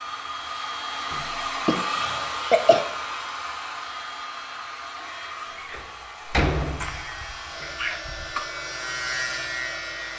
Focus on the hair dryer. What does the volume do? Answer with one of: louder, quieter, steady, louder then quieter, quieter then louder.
quieter.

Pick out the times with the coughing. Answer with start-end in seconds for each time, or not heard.
1.6-2.8, 6.7-8.4.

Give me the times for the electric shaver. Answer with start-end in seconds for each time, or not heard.
6.8-10.1.